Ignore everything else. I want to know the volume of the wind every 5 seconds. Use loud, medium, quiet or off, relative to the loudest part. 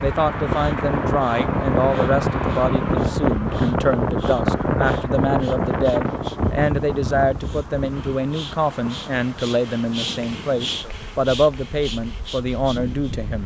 loud, medium, quiet.